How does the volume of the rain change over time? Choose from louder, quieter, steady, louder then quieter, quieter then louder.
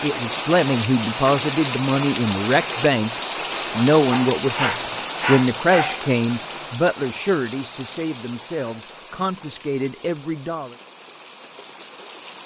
quieter.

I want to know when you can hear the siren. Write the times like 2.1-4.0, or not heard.
not heard.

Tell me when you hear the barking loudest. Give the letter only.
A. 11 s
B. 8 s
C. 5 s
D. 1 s
C.